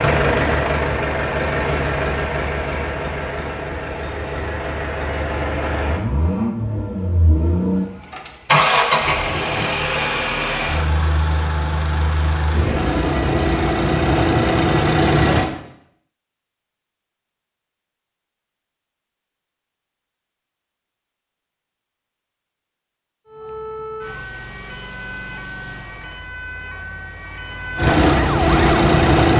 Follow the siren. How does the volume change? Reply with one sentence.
The loudness of the siren goes up.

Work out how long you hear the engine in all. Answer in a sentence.
The engine can be heard for 17 seconds in total.